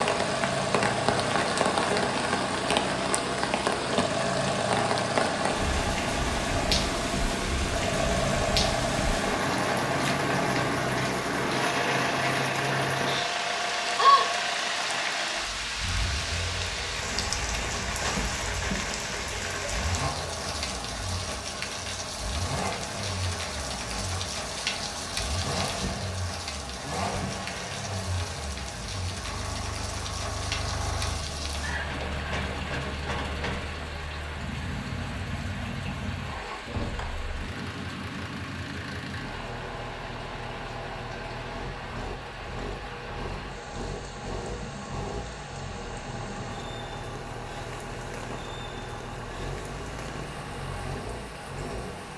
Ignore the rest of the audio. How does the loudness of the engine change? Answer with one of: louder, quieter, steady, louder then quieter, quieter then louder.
quieter.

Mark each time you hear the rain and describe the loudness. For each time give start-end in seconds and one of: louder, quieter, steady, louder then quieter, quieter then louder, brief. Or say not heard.
0.0-52.1 quieter.